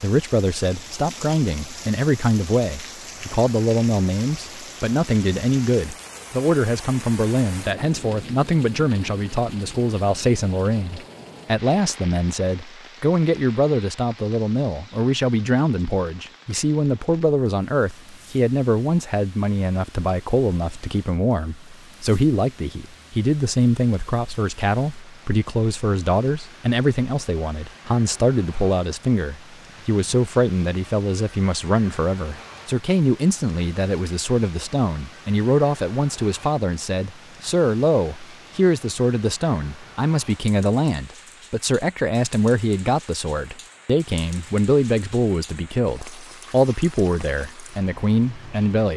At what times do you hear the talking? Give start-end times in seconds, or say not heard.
0.0-48.9.